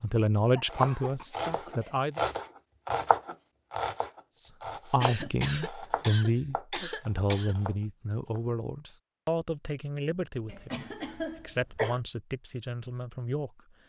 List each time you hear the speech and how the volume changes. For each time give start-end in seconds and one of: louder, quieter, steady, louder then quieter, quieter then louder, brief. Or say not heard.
0.0-2.2 brief
4.4-13.8 quieter.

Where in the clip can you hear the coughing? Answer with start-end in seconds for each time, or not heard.
0.6-1.2, 5.0-7.5, 10.5-12.0.